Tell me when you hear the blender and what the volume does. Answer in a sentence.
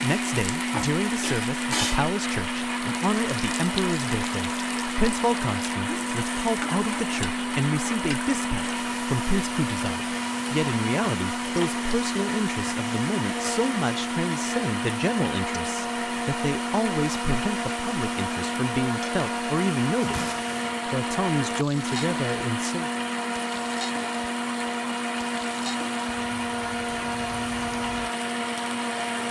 The blender can be heard from 0.0 to 29.2 s, at a steady volume.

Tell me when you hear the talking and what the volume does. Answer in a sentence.
The talking can be heard from 0.0 to 22.9 s, at a steady volume.